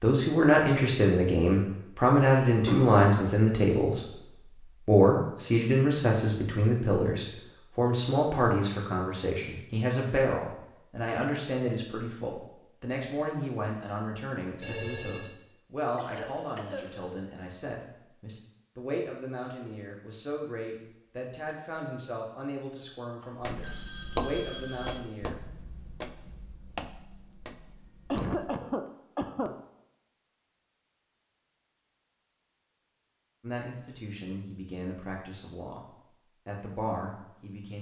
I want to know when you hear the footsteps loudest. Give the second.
24 s.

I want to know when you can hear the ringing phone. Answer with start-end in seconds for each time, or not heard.
14.6-15.3, 23.2-25.0.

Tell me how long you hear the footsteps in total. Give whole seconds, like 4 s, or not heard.
5 s.